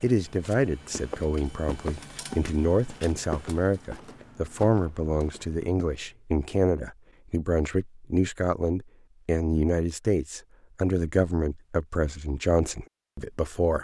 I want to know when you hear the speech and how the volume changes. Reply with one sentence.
The speech can be heard from 0.0 to 13.7 s, at a steady volume.